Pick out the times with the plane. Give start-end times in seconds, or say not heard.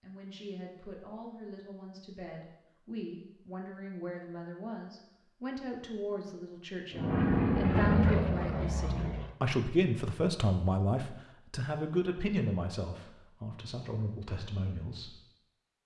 6.9-9.3.